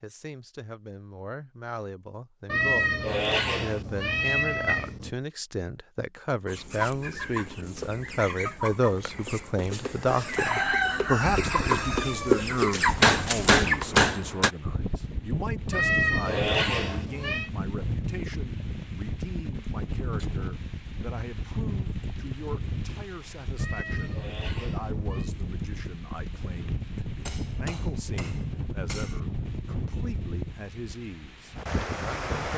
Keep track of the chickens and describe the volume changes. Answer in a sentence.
The loudness of the chickens goes up.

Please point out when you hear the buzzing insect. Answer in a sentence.
You can't hear the buzzing insect here.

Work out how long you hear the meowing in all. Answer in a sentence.
You can hear the meowing for 6 seconds altogether.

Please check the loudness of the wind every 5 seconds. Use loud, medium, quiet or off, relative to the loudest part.
off, off, loud, loud, loud, loud, loud.